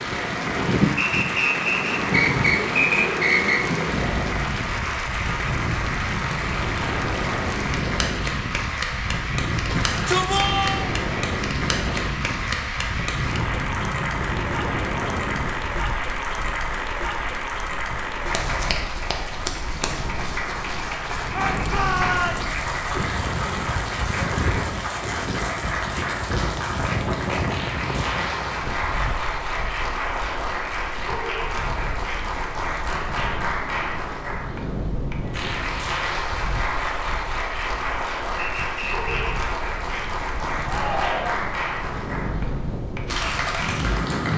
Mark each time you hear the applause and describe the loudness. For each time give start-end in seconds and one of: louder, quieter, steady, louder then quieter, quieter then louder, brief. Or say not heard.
0.0-44.3 steady.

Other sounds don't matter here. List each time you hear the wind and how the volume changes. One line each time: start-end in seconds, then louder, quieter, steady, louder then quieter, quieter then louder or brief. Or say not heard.
0.0-44.3 quieter.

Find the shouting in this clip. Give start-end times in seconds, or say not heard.
9.7-10.9, 21.3-22.4, 40.6-41.4.